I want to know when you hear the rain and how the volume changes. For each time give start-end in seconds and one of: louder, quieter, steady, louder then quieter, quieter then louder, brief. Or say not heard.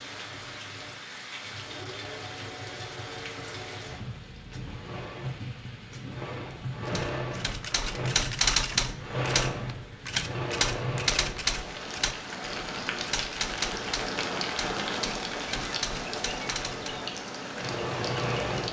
0.0-18.6 louder.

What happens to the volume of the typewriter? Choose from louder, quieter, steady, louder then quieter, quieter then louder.
quieter.